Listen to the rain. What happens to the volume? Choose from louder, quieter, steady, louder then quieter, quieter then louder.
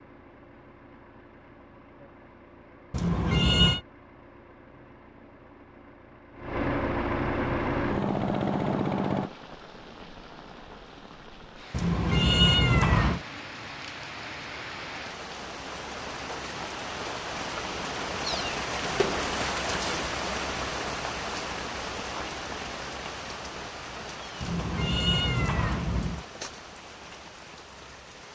louder then quieter.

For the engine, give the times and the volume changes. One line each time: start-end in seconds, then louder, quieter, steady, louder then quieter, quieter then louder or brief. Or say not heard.
0.0-9.3 louder.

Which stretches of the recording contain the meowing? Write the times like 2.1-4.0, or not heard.
2.9-3.8, 11.7-13.2, 24.4-26.2.